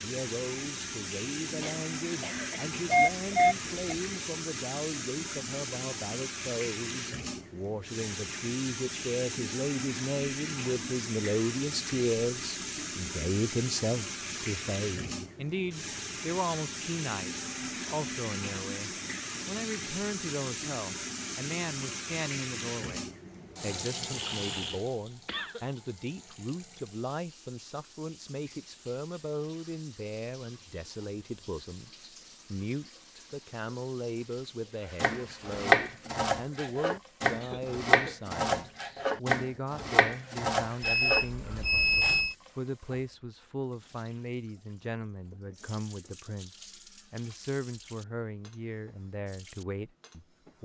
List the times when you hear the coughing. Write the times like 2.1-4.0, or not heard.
1.6-3.4, 24.1-25.6, 37.3-38.2.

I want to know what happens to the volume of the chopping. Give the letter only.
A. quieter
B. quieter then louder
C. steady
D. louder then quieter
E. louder
A.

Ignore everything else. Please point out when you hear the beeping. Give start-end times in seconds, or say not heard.
2.9-4.1, 40.8-42.4.